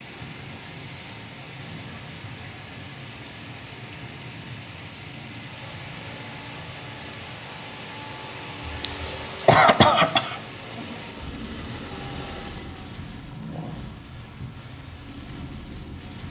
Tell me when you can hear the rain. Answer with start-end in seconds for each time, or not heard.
0.0-16.2.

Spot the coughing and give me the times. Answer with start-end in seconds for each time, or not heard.
8.7-10.9.